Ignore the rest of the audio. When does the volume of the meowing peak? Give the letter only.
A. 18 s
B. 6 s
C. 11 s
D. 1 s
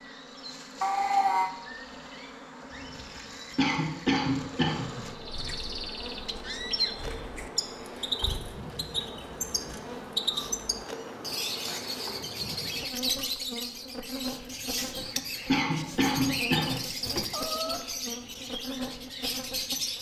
D.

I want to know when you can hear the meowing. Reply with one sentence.
You can hear the meowing from 0.8 to 1.5 s, from 10.2 to 11.8 s and from 17.3 to 17.9 s.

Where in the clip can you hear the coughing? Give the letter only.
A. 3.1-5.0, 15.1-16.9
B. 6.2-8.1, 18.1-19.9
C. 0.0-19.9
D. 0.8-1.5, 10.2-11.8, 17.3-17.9
A.